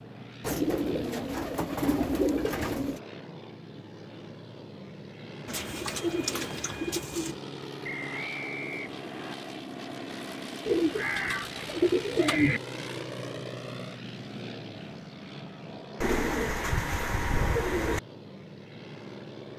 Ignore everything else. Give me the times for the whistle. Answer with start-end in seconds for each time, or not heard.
7.8-9.3.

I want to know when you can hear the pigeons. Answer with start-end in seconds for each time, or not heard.
0.4-3.0, 5.5-7.3, 10.7-12.6, 16.0-18.0.